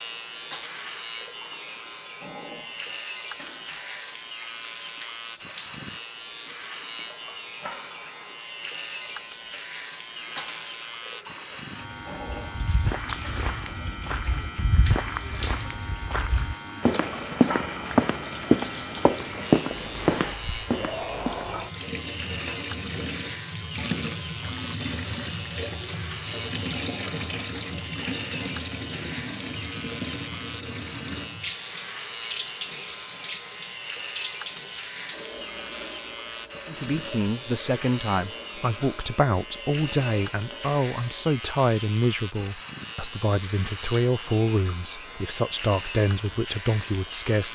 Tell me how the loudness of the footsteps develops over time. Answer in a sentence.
The volume of the footsteps goes up.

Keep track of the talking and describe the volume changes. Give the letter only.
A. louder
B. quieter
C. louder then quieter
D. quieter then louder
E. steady
E.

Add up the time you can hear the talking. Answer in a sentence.
You can hear the talking for 11 seconds altogether.